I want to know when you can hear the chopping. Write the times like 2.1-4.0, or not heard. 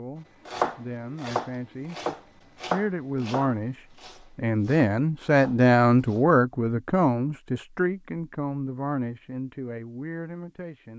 0.5-6.2.